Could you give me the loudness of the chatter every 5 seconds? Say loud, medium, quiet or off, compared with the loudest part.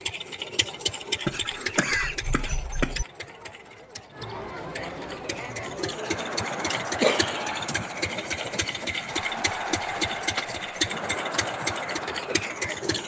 medium, loud, loud.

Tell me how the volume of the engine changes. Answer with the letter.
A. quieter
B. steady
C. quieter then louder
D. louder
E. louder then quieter
C.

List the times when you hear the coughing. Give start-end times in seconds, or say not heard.
1.2-3.0, 7.0-7.7.